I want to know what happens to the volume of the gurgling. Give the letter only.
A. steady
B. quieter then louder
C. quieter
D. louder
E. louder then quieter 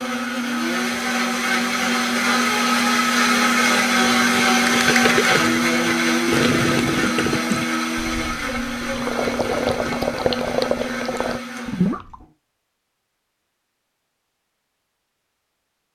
B.